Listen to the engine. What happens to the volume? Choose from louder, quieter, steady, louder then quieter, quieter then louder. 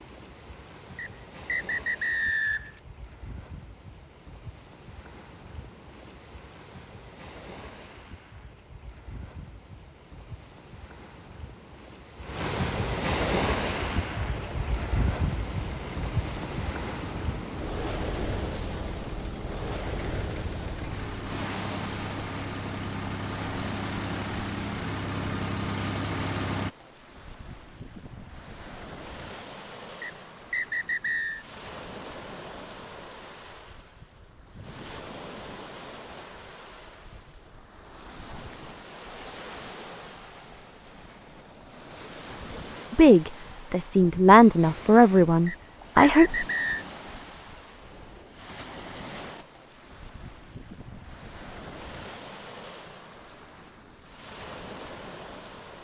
louder.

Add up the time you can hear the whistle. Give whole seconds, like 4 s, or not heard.
5 s.